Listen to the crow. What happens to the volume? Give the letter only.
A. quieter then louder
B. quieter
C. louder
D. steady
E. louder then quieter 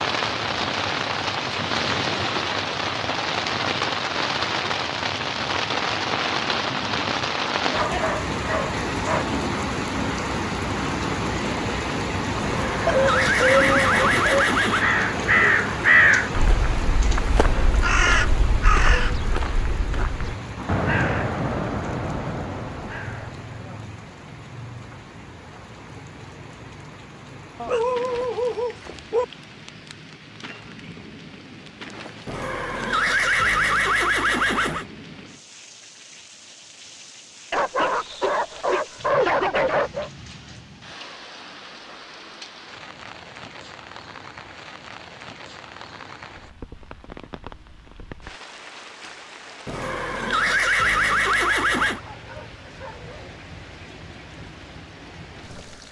B.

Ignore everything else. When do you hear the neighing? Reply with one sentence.
You can hear the neighing from 12.4 to 14.8 s, from 32.2 to 34.9 s and from 49.6 to 52.0 s.